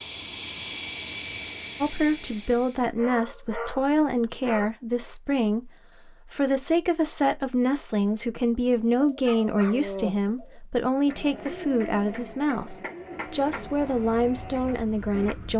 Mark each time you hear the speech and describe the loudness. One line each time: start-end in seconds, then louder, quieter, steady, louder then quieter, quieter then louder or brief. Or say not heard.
1.8-15.5 steady.